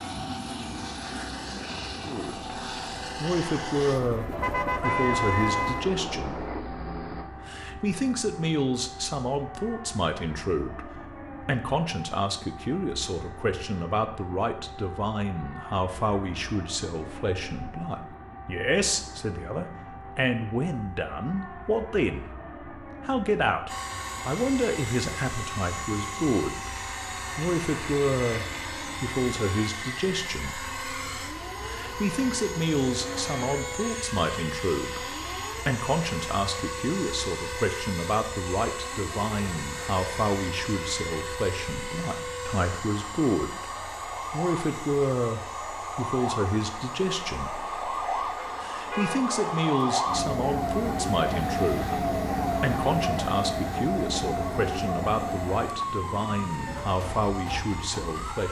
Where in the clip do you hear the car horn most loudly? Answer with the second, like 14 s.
5 s.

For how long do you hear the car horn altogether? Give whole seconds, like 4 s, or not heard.
3 s.